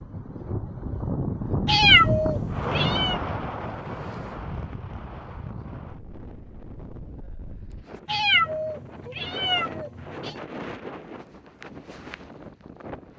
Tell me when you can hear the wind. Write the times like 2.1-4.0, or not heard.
0.0-13.1.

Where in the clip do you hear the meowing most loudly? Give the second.
2 s.